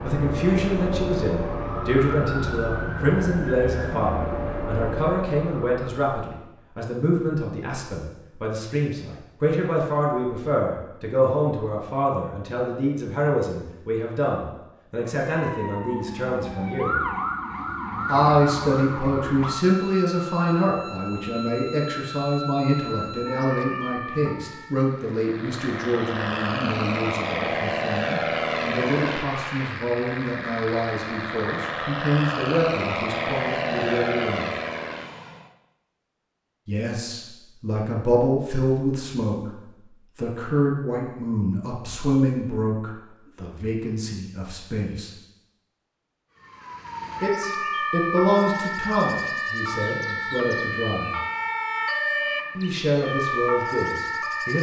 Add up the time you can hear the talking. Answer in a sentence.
You can hear the talking for 48 seconds altogether.